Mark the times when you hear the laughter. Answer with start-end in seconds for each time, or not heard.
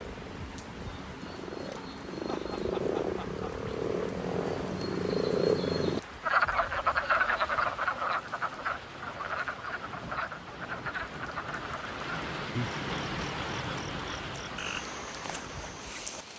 2.1-3.5.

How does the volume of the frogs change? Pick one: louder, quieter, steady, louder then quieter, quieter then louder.
louder then quieter.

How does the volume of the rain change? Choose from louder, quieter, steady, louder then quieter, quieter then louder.
louder.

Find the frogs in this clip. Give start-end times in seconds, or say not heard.
0.0-16.3.